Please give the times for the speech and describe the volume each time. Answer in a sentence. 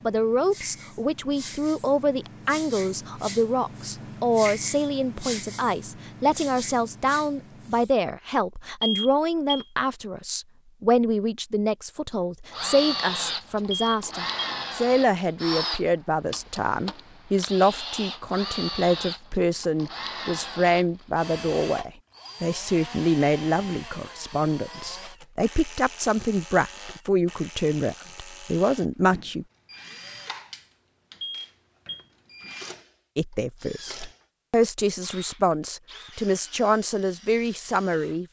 The speech can be heard from 0.1 to 29.4 s, at a steady volume; and from 33.1 to 38.2 s, getting louder.